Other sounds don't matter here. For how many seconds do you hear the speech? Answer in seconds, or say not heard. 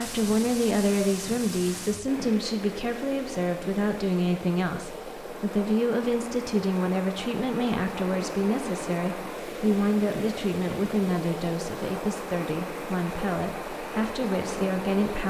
15 s.